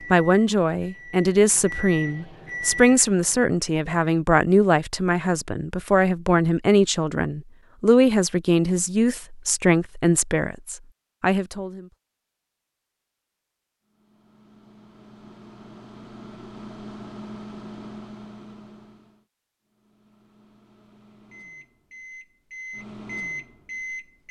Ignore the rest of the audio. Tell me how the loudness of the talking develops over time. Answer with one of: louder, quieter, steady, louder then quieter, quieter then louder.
steady.